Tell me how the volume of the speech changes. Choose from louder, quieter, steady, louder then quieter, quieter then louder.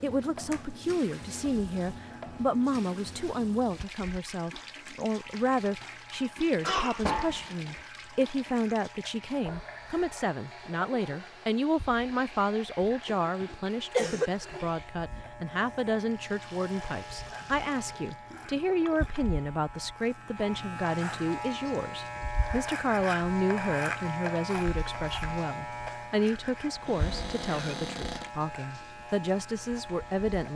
steady.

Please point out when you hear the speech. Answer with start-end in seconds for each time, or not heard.
0.0-30.5.